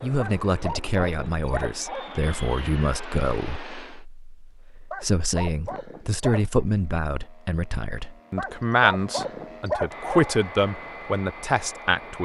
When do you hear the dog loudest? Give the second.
10 s.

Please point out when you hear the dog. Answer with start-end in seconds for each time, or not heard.
0.1-2.2, 4.9-6.7, 8.3-10.3.